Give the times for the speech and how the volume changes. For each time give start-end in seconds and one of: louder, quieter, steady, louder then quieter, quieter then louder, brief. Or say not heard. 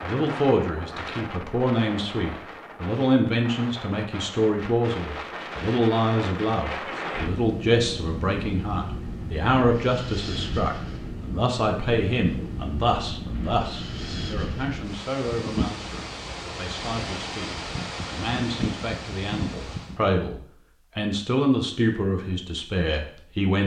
0.0-23.6 quieter then louder.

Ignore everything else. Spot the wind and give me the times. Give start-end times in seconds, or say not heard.
0.0-20.0.